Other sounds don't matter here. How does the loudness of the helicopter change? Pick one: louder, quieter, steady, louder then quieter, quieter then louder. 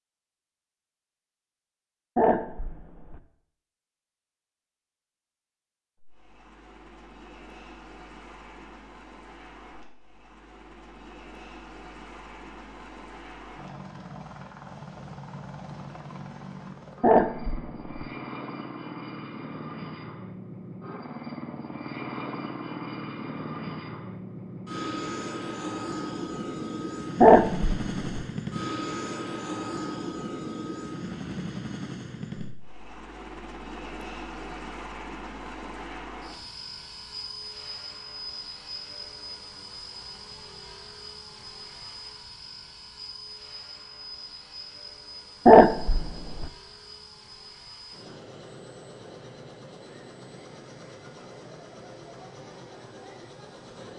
louder then quieter.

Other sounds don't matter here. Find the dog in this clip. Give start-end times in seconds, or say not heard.
2.1-3.2, 17.0-17.9, 27.2-28.2, 45.5-46.5.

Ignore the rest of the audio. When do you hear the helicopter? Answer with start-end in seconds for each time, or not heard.
6.0-53.9.